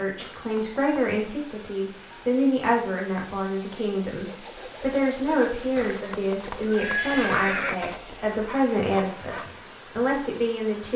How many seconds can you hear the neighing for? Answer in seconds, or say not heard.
3 s.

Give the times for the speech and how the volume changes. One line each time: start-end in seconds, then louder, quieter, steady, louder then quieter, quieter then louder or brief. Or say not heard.
0.0-10.9 steady.